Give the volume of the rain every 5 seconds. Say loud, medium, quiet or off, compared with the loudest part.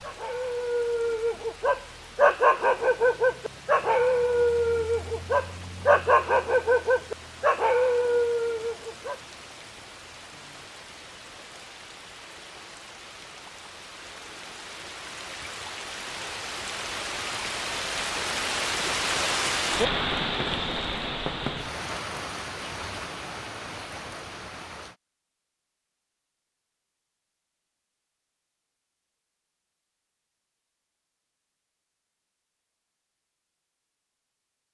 quiet, quiet, quiet, loud, loud, off, off.